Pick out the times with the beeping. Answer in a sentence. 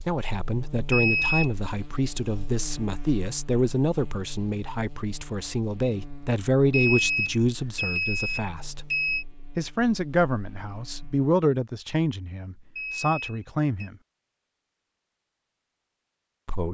You can hear the beeping from 0.9 to 1.5 s, from 6.7 to 9.2 s and from 12.8 to 13.9 s.